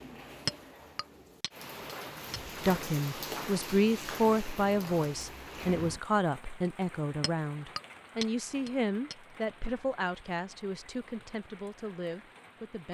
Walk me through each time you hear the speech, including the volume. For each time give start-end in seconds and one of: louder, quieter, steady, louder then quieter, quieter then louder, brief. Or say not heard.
2.6-12.8 quieter.